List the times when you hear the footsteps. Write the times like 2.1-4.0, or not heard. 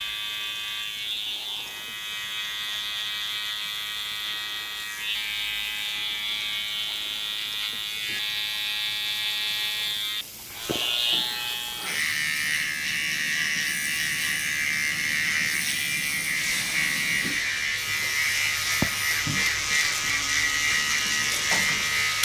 not heard.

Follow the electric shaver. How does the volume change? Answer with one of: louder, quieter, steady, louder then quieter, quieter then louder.
louder.